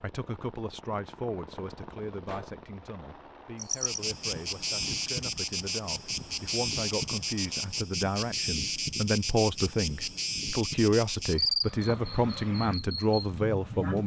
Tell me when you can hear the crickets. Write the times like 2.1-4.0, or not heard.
3.5-14.0.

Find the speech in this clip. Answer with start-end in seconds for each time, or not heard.
0.0-14.0.